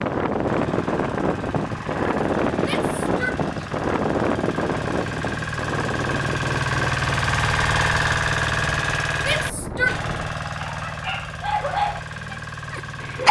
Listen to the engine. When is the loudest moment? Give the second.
8 s.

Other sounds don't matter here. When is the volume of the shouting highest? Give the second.
10 s.